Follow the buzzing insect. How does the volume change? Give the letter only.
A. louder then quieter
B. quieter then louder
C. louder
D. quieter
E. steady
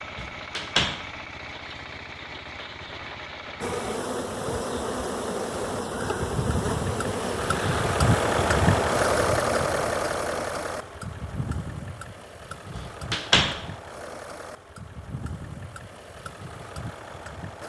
E.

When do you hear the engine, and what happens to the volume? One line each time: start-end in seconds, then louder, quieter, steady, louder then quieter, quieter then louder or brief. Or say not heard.
0.0-17.6 louder then quieter.